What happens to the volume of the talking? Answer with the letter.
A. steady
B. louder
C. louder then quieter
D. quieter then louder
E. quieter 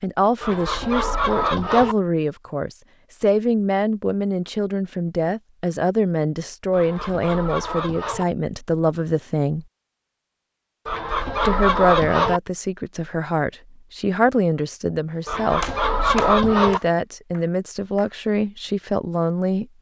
A.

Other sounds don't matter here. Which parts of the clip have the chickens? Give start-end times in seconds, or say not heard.
0.4-1.9, 6.7-8.2, 10.8-12.4, 15.2-16.8.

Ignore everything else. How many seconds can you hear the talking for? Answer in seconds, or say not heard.
18 s.